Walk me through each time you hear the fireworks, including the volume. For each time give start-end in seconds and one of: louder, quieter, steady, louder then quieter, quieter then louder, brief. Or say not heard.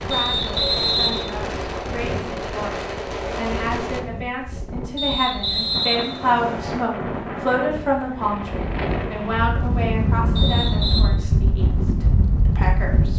0.0-4.0 steady.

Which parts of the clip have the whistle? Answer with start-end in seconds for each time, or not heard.
0.1-1.4, 5.0-6.8, 10.3-11.1.